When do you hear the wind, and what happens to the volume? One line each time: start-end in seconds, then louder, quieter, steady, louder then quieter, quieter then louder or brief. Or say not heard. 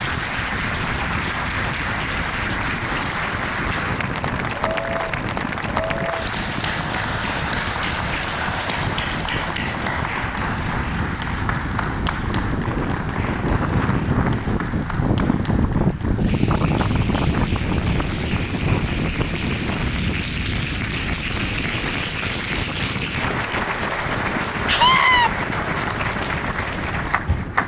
0.0-27.6 louder then quieter.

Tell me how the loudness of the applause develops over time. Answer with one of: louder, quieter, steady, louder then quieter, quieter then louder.
quieter then louder.